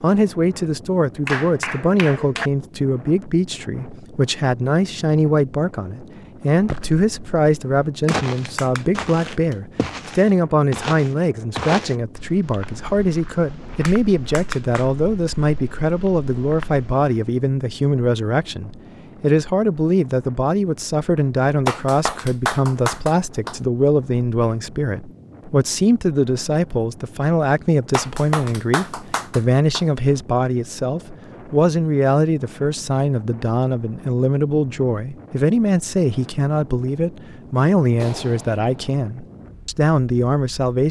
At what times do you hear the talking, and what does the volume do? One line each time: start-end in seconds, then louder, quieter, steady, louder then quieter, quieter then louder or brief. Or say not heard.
0.0-40.8 steady.